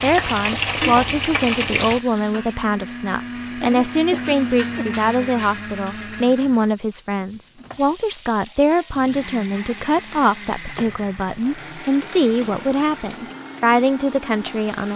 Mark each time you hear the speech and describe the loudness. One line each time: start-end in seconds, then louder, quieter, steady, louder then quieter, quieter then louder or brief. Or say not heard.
0.0-14.9 steady.